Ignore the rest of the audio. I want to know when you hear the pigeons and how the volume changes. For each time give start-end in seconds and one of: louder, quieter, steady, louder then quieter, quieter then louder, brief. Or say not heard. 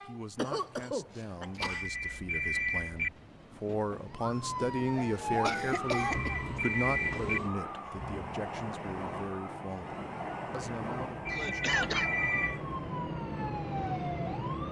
not heard.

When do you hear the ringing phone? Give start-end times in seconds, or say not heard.
1.6-3.1, 5.8-7.4, 11.2-12.7.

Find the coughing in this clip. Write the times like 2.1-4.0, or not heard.
0.3-1.9, 5.5-6.4, 11.3-12.1.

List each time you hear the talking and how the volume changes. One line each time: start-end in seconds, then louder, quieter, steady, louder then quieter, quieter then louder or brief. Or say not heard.
0.1-11.7 louder then quieter.